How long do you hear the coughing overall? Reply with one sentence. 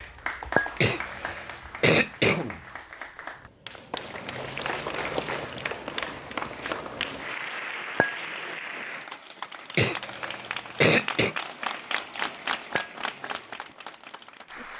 The coughing can be heard for 3 seconds in total.